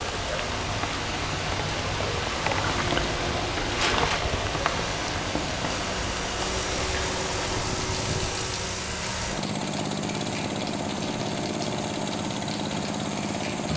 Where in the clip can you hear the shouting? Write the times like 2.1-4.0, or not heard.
not heard.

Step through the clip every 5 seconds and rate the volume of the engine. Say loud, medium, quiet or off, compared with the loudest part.
medium, loud, loud.